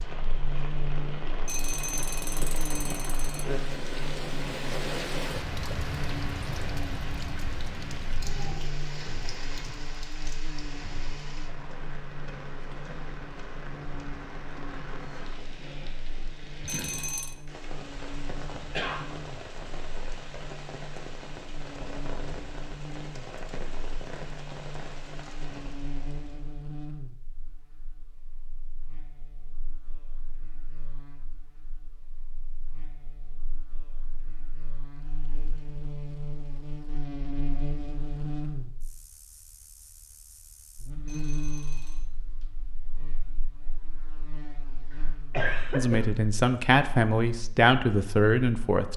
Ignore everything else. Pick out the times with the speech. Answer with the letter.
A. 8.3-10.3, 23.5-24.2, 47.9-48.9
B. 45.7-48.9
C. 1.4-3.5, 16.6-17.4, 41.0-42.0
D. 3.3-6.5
B.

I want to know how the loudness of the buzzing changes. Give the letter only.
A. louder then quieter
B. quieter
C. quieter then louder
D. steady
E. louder
C.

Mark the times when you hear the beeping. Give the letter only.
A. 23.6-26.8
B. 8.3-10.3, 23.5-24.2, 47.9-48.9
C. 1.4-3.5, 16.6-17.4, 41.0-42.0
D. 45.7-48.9
C.